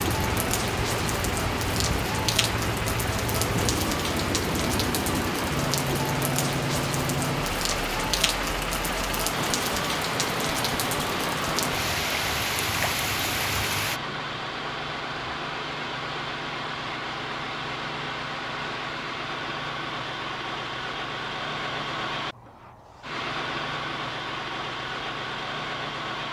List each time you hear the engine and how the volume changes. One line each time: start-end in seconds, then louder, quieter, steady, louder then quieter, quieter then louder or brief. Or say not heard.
0.0-26.2 steady.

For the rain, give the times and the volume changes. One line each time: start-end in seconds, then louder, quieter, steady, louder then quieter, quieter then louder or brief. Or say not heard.
0.0-14.0 steady.